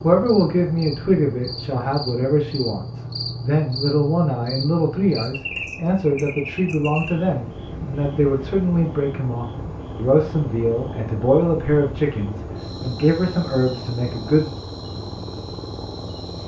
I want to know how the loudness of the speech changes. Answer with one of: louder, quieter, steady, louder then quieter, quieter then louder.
steady.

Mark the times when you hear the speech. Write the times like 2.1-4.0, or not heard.
0.0-14.5.